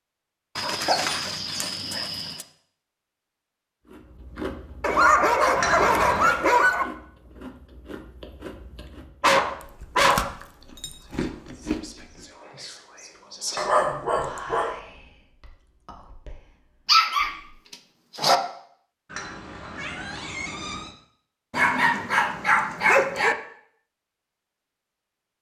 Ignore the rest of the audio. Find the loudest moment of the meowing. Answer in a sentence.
The volume of the meowing peaks at 6 seconds.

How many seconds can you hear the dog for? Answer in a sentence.
You can hear the dog for 10 seconds altogether.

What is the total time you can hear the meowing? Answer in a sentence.
The meowing can be heard for 3 seconds in total.